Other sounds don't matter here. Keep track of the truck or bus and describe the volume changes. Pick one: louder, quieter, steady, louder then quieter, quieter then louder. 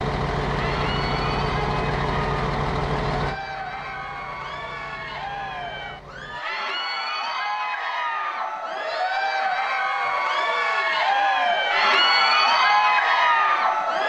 quieter.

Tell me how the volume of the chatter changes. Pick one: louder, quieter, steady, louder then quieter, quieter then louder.
louder.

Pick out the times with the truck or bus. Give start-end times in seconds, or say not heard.
0.0-6.5.